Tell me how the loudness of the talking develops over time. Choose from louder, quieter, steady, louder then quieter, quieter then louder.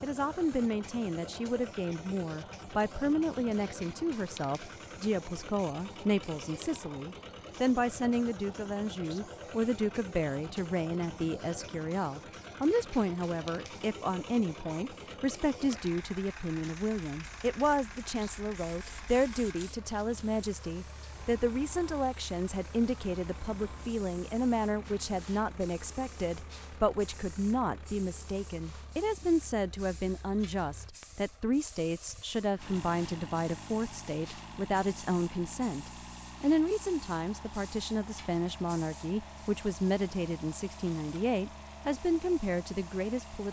steady.